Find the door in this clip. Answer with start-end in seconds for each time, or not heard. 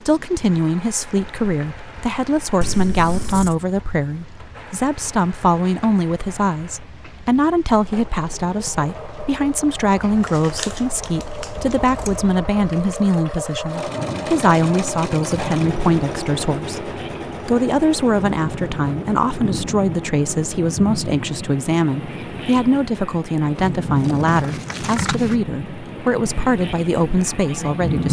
not heard.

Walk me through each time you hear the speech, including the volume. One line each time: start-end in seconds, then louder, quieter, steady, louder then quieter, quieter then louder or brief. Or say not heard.
0.1-28.0 steady.